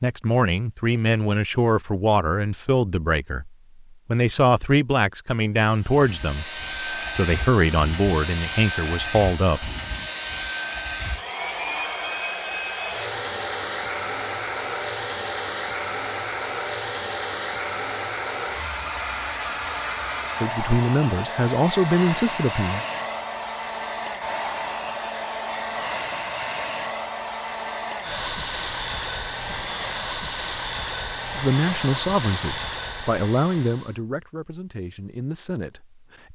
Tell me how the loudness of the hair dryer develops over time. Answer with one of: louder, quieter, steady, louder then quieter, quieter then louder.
steady.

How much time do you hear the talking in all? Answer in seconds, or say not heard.
17 s.